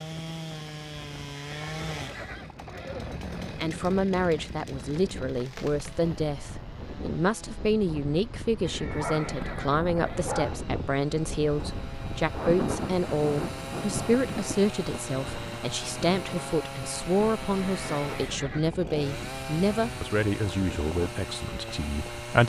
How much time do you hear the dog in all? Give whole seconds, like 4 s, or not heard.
2 s.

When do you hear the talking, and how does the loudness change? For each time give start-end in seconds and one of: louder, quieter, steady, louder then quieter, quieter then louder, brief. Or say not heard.
3.5-22.4 steady.